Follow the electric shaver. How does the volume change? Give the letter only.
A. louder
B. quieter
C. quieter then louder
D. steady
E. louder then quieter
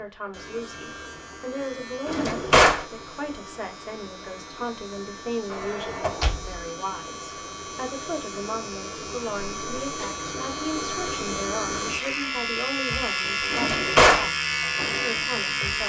A.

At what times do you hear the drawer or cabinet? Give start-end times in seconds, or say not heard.
2.0-2.9, 5.5-6.5, 13.5-14.3.